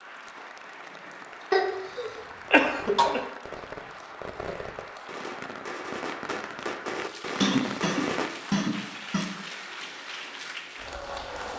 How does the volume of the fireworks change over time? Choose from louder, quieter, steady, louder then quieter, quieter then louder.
louder.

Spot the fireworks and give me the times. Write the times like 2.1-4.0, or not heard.
2.6-8.3.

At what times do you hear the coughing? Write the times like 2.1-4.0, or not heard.
1.5-3.2, 7.4-9.3.